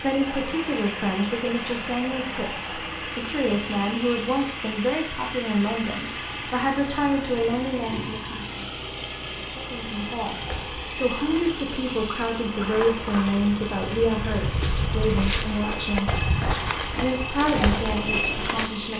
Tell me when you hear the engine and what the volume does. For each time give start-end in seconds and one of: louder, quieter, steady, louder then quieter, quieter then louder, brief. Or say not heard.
0.0-18.9 steady.